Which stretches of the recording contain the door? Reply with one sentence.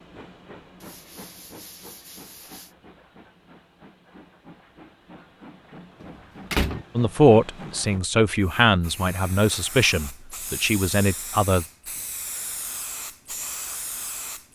The door can be heard from 6.0 to 6.8 s.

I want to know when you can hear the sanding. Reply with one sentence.
The sanding can be heard from 0.8 to 2.8 s.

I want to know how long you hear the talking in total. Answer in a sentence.
You can hear the talking for 5 seconds altogether.